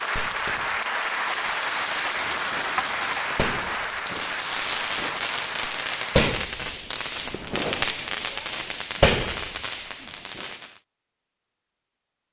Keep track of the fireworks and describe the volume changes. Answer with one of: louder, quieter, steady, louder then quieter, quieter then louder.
louder.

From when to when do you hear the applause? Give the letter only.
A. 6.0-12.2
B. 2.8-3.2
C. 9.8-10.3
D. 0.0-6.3
D.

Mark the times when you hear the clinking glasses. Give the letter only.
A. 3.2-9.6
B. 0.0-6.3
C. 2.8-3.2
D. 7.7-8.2
C.